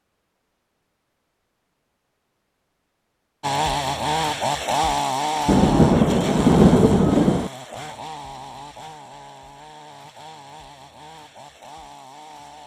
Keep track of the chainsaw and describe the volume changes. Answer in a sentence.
The volume of the chainsaw goes down.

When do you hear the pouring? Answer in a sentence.
The pouring can't be heard in this clip.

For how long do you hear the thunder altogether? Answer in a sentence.
The thunder can be heard for 2 seconds in total.